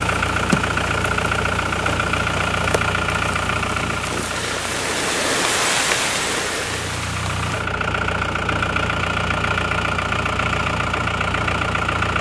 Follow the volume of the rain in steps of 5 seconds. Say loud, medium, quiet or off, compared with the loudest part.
medium, loud, off.